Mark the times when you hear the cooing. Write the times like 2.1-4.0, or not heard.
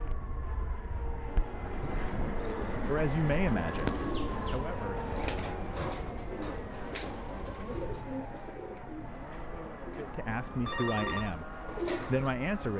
1.4-12.3.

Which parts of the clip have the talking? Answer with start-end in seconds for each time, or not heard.
2.9-5.0, 9.9-12.7.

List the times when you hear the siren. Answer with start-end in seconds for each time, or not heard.
0.0-12.7.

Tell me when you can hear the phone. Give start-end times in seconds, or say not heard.
10.7-11.3.